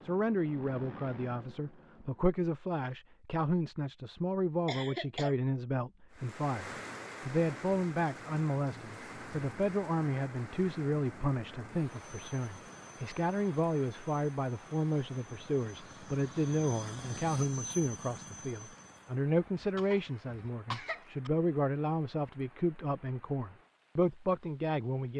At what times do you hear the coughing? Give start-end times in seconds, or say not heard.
4.7-5.3, 19.6-21.3.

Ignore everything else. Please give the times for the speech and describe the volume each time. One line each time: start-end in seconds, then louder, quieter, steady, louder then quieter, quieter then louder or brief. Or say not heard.
0.1-25.1 steady.